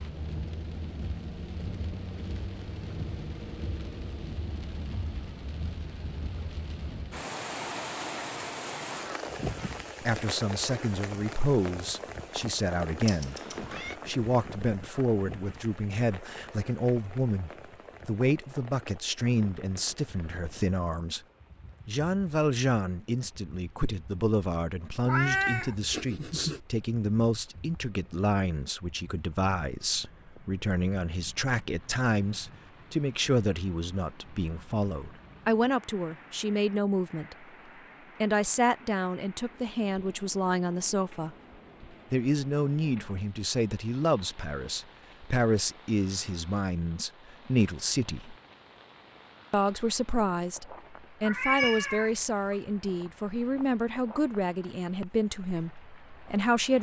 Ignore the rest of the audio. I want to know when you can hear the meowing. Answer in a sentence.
You can hear the meowing from 13.1 to 13.9 s, from 25.1 to 26.6 s and from 51.2 to 52.5 s.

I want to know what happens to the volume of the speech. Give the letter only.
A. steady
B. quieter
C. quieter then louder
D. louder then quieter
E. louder
A.